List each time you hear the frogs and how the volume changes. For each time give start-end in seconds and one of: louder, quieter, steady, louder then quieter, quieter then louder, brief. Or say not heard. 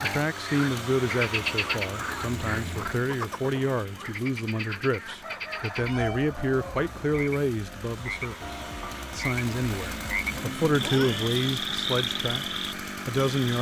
0.0-13.5 quieter then louder.